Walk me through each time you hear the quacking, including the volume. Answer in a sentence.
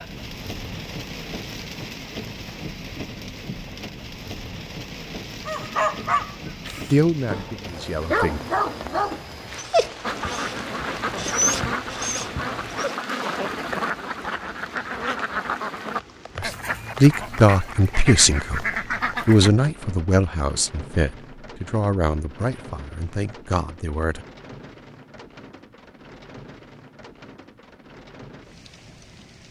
You can hear the quacking from 10.0 to 19.5 s, at a steady volume.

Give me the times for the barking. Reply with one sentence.
The barking can be heard from 5.5 to 12.9 s.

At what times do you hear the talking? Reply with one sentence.
The talking can be heard from 6.9 to 8.4 s, from 16.4 to 18.6 s and from 19.2 to 24.2 s.